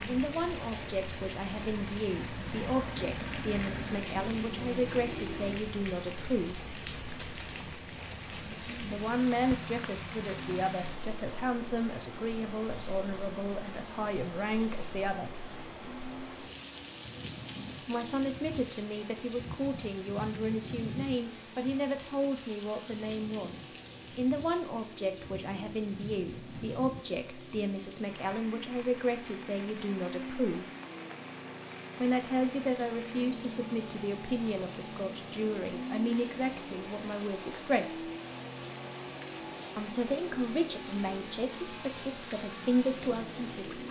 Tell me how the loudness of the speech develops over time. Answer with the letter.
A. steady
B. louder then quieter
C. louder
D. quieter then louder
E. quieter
A.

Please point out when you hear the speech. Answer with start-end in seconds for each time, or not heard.
0.1-6.6, 8.9-15.4, 17.8-30.7, 32.0-38.1, 39.8-43.8.